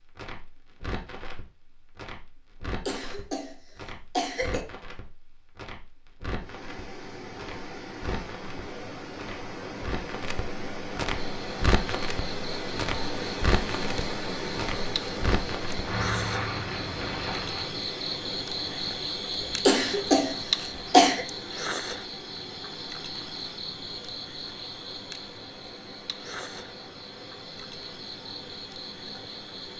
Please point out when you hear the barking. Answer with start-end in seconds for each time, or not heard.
not heard.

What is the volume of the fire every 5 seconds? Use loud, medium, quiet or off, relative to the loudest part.
medium, medium, loud, loud, off, off.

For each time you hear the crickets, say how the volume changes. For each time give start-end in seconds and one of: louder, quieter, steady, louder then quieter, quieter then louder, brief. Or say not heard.
11.2-29.7 louder then quieter.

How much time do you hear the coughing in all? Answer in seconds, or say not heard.
3 s.